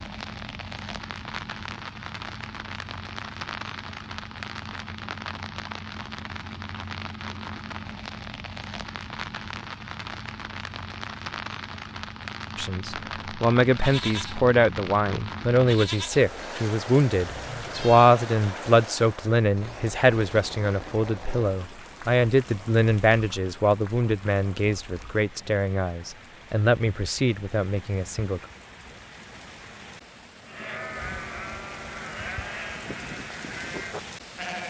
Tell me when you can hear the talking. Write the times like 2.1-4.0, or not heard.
12.6-28.4.